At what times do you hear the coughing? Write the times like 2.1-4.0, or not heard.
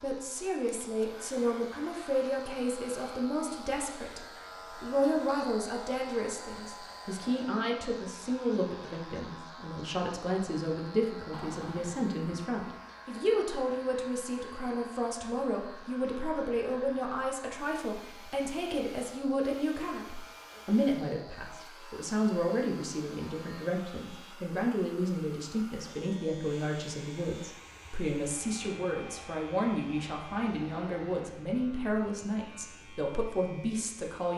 not heard.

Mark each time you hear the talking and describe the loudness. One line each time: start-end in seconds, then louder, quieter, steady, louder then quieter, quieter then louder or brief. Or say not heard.
0.0-34.3 steady.